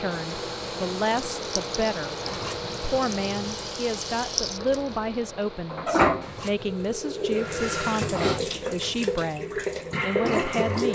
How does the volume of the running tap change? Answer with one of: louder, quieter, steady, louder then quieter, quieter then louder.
louder.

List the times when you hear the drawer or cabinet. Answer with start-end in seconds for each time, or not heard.
not heard.